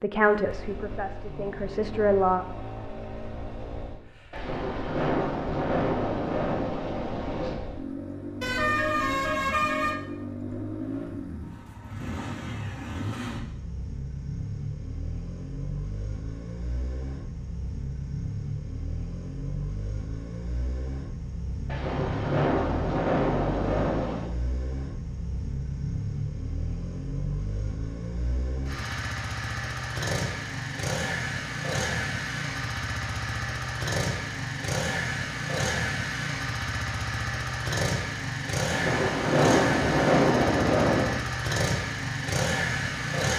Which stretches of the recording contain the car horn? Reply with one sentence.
The car horn can be heard from 8.4 to 9.9 s.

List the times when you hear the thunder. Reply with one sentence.
The thunder can be heard from 4.3 to 7.5 s, from 21.6 to 24.3 s and from 38.7 to 41.2 s.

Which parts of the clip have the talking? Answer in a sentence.
The talking can be heard from 0.0 to 2.5 s.